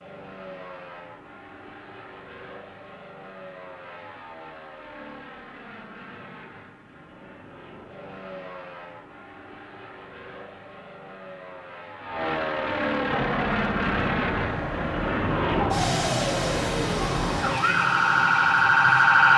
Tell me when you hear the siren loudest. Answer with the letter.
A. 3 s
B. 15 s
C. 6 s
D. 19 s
D.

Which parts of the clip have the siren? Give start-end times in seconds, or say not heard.
13.1-19.3.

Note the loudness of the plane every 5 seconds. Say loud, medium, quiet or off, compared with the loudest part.
quiet, quiet, loud, loud.